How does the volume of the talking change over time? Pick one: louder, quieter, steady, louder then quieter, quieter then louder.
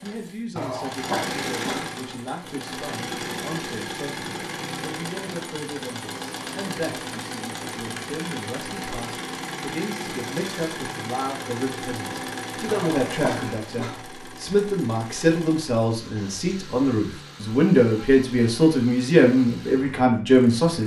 louder.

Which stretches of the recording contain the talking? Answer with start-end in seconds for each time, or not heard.
0.0-20.8.